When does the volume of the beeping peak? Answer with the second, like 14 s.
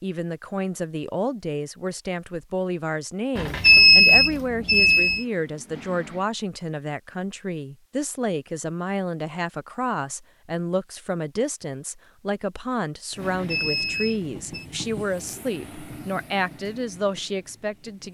4 s.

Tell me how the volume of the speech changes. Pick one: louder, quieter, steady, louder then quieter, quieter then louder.
steady.